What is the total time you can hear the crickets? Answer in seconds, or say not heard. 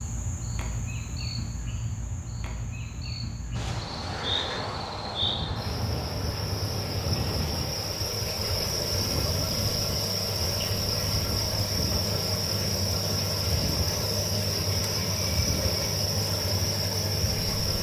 18 s.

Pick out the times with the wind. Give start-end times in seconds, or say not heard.
3.5-17.7.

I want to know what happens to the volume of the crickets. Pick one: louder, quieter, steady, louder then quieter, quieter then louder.
louder.